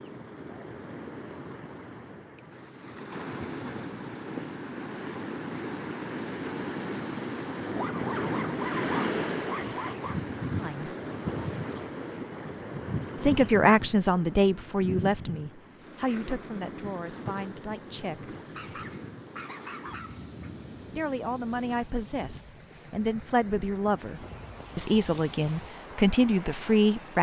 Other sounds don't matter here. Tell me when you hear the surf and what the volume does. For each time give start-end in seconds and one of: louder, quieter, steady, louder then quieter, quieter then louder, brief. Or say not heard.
0.0-27.1 louder then quieter.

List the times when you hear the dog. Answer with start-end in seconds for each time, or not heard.
7.7-10.2, 18.4-20.5.